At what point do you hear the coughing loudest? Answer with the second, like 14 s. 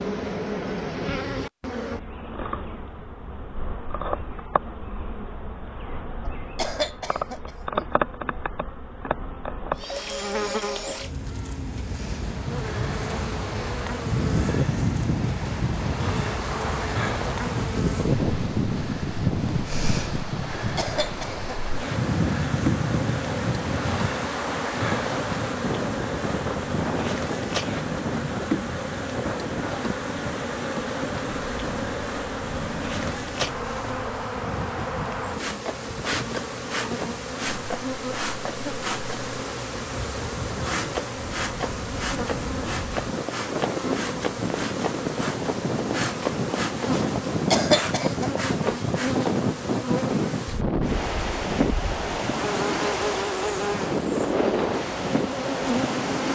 48 s.